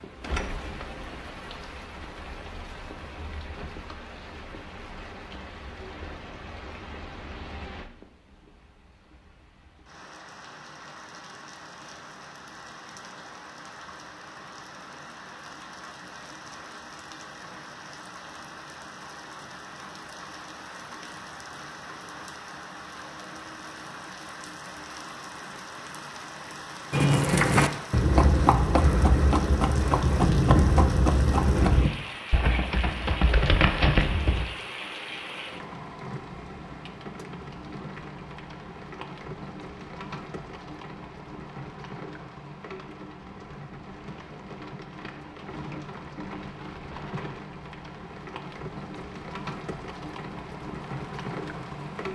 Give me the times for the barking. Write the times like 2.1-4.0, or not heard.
not heard.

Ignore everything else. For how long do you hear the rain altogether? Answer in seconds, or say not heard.
52 s.